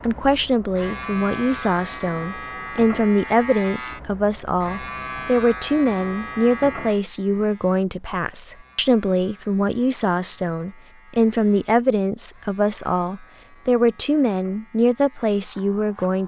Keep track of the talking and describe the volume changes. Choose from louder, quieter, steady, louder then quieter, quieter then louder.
steady.